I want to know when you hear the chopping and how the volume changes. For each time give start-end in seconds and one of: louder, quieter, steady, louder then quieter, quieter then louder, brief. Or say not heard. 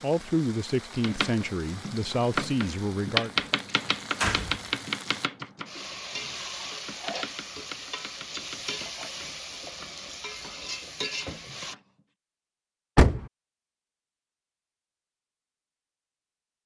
1.0-12.1 quieter.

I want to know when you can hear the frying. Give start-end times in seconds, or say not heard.
0.0-11.8.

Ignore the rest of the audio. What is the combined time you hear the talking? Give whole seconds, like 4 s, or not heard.
3 s.